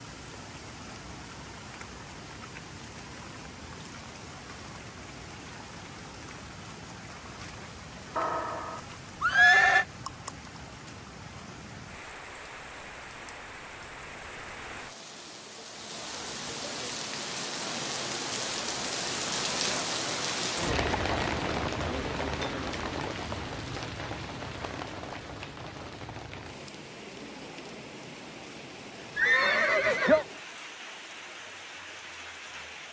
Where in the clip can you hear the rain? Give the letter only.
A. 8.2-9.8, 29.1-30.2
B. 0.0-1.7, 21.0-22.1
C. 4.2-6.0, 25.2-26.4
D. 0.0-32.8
D.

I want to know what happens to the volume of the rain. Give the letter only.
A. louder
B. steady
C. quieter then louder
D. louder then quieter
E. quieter
D.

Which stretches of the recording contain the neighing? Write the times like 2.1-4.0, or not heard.
8.2-9.8, 29.1-30.2.